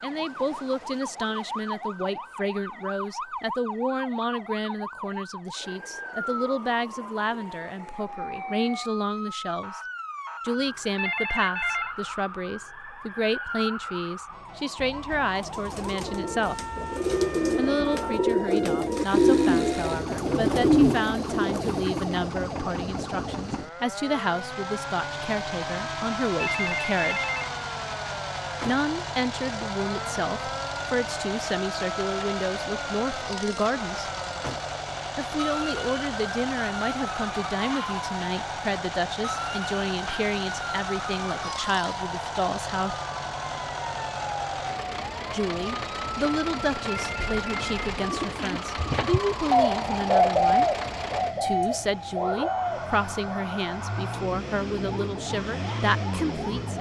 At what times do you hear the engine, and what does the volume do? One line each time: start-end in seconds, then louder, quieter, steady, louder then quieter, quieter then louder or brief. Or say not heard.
18.9-56.7 steady.